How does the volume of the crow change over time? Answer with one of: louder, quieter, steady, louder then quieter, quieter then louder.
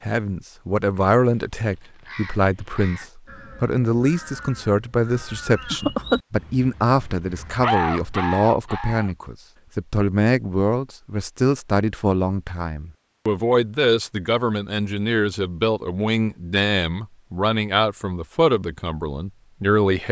louder.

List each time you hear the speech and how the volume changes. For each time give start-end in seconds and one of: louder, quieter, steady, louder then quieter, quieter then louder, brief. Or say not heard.
0.0-20.0 steady.